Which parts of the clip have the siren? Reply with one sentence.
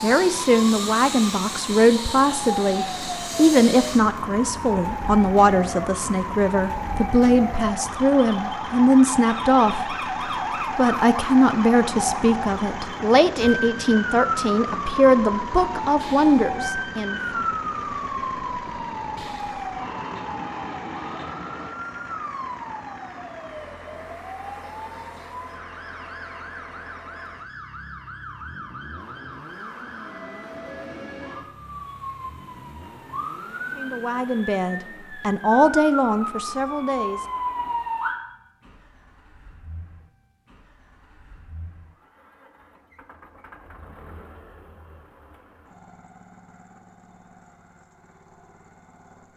You can hear the siren from 0.0 to 38.2 s.